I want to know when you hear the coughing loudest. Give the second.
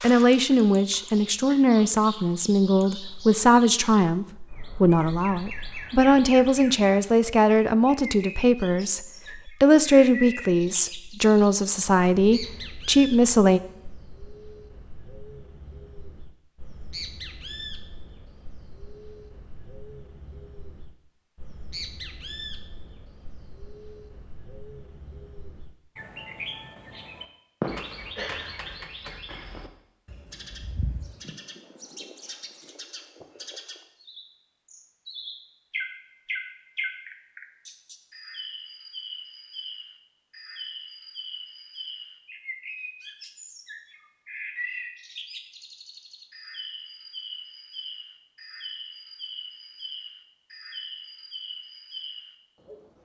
28 s.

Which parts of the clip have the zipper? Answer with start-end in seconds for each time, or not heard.
not heard.